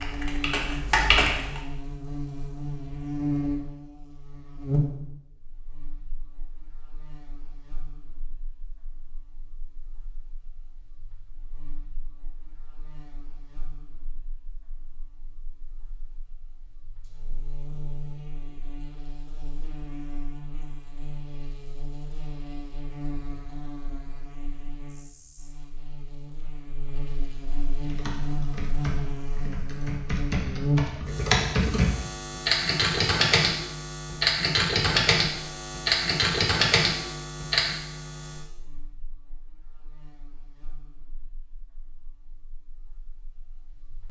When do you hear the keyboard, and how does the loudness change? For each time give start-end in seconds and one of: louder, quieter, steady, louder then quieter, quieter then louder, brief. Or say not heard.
0.0-1.6 brief
27.8-37.8 louder.